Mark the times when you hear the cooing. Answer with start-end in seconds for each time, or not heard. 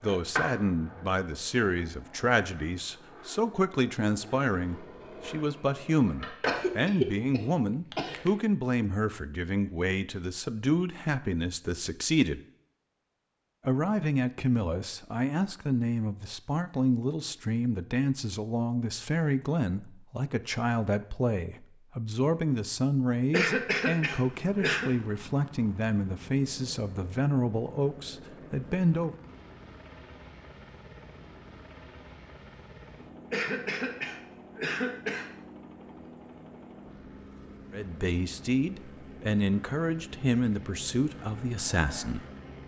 not heard.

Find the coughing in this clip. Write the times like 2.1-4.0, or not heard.
6.5-8.3, 23.3-24.9, 33.3-35.2.